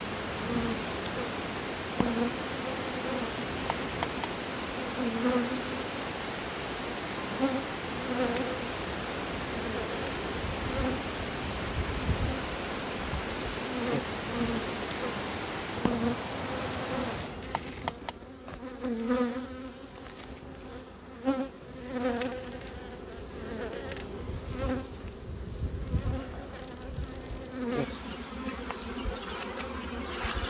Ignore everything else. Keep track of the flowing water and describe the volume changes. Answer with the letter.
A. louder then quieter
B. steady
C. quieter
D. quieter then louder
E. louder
B.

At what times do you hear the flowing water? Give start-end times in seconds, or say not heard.
0.0-17.4.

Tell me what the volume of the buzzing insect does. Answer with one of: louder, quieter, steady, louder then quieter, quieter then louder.
steady.